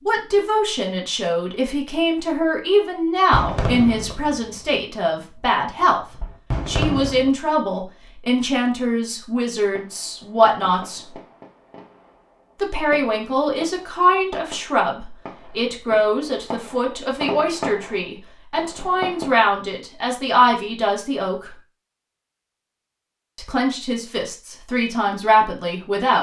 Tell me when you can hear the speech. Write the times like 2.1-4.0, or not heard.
0.1-11.0, 12.6-21.5, 23.4-26.1.